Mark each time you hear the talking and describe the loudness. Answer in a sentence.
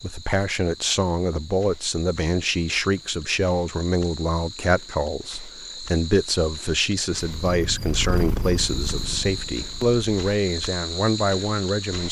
The talking can be heard from 0.0 to 12.0 s, at a steady volume.